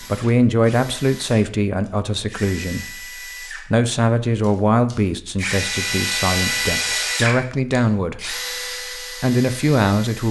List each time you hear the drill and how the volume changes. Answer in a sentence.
You can hear the drill from 0.0 to 10.2 s, getting louder then quieter.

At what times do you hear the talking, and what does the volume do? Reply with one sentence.
You can hear the talking from 0.0 to 10.2 s, at a steady volume.